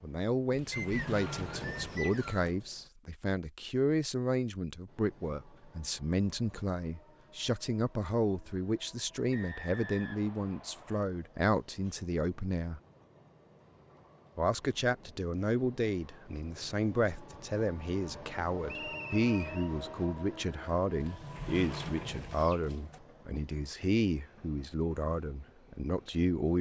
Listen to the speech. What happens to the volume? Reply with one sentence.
The volume of the speech stays about the same.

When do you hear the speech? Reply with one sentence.
You can hear the speech from 0.0 to 12.8 s and from 14.3 to 26.5 s.